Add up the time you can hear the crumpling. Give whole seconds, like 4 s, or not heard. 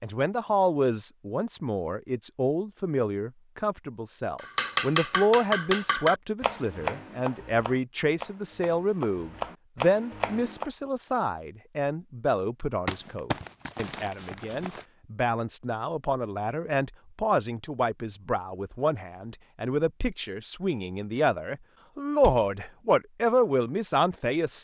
2 s.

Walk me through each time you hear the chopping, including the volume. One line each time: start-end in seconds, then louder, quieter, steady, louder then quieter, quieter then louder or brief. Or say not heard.
4.4-10.7 quieter then louder.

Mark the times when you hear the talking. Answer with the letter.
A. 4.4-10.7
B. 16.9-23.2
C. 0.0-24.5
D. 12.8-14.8
C.